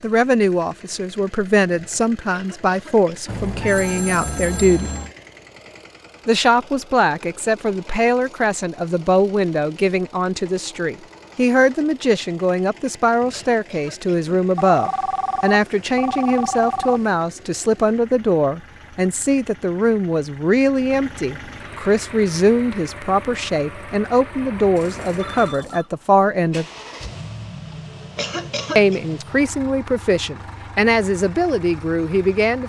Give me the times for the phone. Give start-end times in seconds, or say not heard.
3.2-5.2, 14.6-17.1, 24.4-25.9.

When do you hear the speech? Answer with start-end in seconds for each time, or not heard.
0.0-4.9, 6.2-26.6, 28.8-32.6.